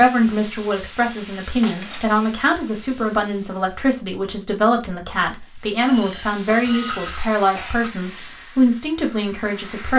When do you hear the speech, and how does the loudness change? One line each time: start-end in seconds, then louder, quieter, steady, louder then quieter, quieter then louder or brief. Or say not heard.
0.0-9.9 steady.